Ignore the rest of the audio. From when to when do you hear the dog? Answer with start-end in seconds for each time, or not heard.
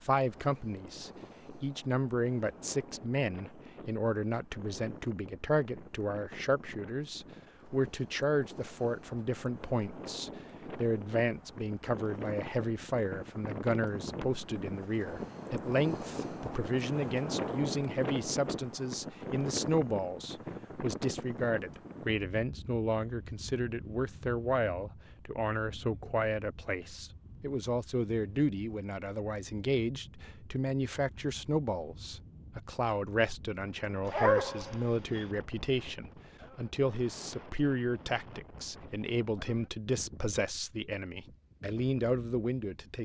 34.0-35.2.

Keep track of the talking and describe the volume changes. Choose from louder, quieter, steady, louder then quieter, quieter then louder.
steady.